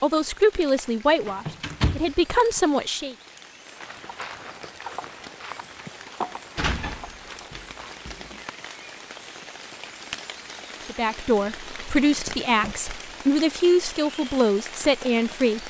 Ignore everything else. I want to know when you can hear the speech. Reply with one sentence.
The speech can be heard from 0.0 to 3.1 s and from 10.8 to 15.6 s.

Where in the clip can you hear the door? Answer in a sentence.
The door can be heard from 1.2 to 2.6 s, from 6.5 to 8.3 s and from 11.3 to 12.8 s.